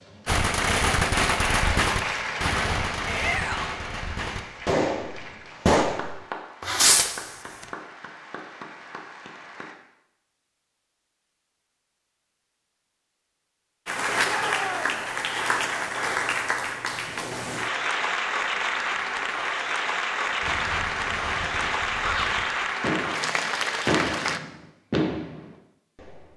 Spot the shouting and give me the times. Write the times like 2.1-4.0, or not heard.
3.0-3.8, 14.2-15.0, 21.9-22.4.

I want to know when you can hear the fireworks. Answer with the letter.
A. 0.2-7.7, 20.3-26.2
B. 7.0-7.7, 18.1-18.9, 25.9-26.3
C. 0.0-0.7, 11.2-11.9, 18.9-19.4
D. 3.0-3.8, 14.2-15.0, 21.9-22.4
A.